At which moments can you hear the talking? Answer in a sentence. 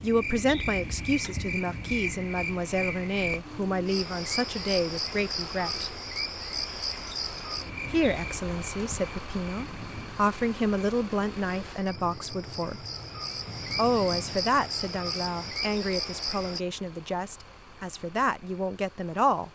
You can hear the talking from 0.0 to 6.0 s, from 7.9 to 12.8 s and from 13.8 to 19.5 s.